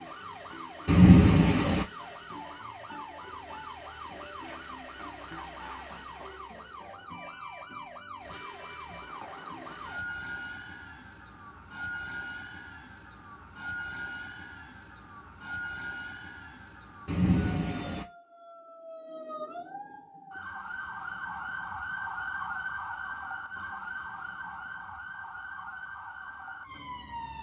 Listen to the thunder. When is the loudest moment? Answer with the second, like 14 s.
1 s.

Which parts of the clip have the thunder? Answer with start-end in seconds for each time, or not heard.
0.8-1.9, 17.1-18.1.